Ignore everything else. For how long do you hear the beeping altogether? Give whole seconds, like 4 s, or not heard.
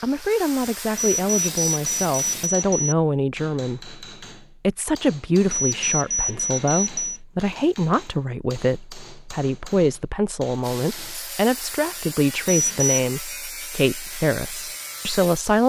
4 s.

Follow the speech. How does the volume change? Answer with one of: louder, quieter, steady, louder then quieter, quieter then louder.
steady.